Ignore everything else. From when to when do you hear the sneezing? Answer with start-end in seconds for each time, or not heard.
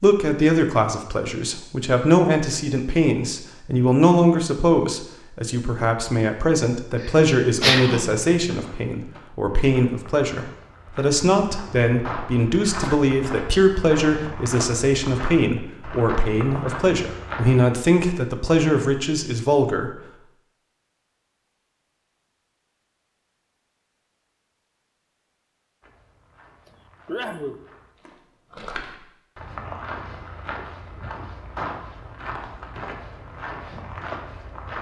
7.6-8.3, 12.7-13.1, 26.6-27.6.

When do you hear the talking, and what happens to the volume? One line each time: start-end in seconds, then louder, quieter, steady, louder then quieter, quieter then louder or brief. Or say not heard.
0.0-20.0 steady.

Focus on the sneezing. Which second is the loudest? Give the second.
8 s.